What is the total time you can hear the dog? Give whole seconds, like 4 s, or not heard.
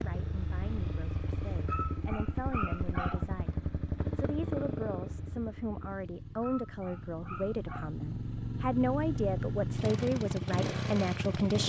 3 s.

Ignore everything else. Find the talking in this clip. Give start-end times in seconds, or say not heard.
0.0-11.6.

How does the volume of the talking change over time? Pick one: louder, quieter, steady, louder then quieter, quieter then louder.
louder.